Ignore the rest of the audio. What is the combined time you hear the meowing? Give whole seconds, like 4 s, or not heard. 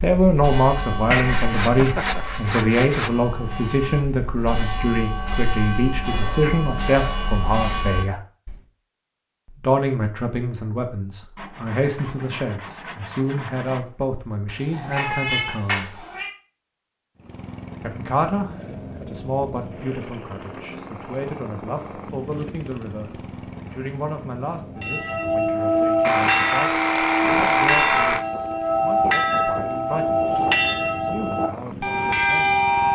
2 s.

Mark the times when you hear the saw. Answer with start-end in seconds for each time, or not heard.
1.1-3.1, 11.3-14.2, 26.0-28.2.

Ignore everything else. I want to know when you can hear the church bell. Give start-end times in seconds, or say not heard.
0.0-8.6, 24.8-32.8.